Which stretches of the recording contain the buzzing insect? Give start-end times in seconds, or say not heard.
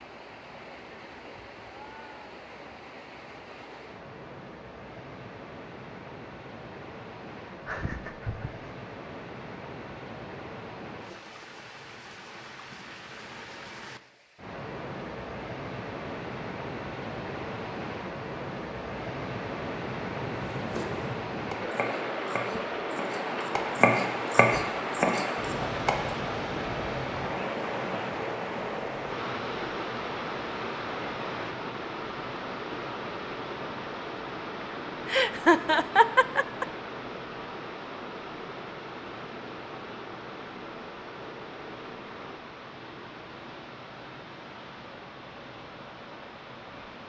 not heard.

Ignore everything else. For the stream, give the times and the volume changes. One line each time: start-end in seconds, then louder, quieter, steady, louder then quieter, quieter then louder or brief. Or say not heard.
0.0-47.0 louder then quieter.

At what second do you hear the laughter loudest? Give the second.
36 s.